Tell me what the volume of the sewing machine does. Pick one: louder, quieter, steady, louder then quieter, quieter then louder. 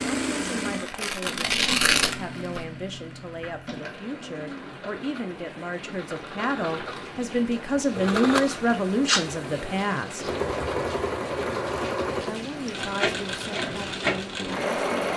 quieter then louder.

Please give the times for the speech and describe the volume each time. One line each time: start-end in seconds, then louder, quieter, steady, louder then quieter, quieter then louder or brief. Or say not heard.
0.2-10.3 louder
12.2-15.1 brief.